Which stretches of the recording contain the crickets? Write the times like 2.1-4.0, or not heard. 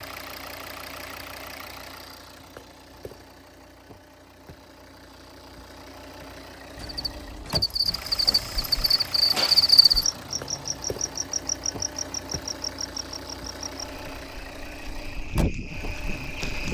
6.8-16.6.